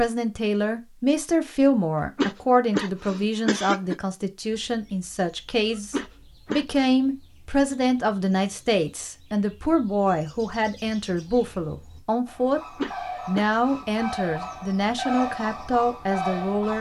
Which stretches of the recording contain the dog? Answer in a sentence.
You can't hear the dog here.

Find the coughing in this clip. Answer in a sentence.
The coughing can be heard from 2.0 to 4.0 s, from 5.8 to 6.8 s and from 12.6 to 13.8 s.